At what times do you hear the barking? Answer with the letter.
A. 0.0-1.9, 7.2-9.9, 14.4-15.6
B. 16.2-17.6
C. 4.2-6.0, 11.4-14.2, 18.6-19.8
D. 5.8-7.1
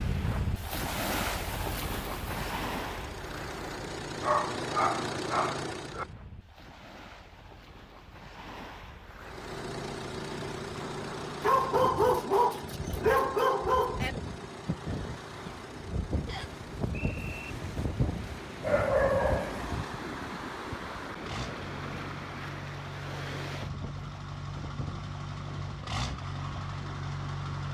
C.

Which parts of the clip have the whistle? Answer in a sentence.
The whistle can be heard from 16.2 to 17.6 s.